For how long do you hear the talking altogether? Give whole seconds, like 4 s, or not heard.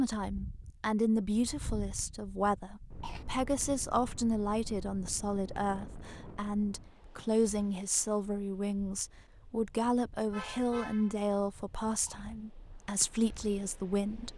14 s.